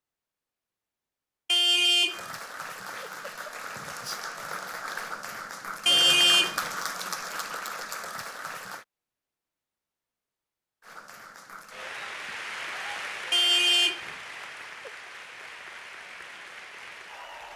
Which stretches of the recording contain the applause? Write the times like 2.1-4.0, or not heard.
2.0-8.8, 10.8-17.5.